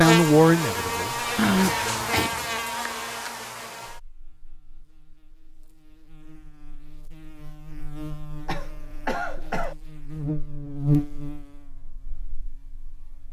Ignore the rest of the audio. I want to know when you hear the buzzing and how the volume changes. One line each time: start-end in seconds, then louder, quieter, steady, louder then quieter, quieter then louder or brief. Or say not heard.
0.0-13.2 quieter then louder.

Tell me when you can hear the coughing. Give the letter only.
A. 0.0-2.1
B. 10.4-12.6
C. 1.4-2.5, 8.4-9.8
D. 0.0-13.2
C.